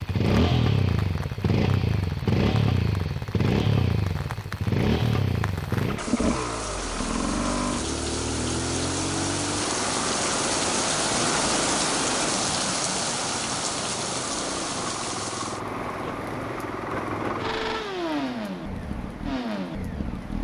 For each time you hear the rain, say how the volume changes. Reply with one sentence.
You can hear the rain from 0.0 to 20.3 s, getting louder then quieter.